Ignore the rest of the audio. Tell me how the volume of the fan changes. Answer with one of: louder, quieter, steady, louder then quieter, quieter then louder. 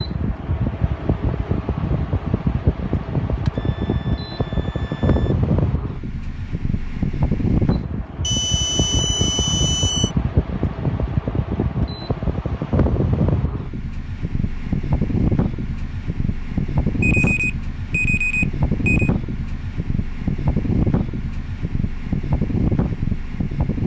steady.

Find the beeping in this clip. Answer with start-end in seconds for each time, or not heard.
3.3-5.3, 8.2-10.1, 17.0-19.1.